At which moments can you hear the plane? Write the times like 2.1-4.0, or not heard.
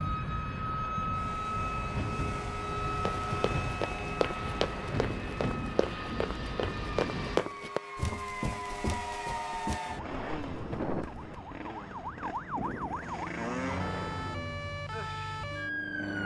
0.0-7.4, 12.6-16.2.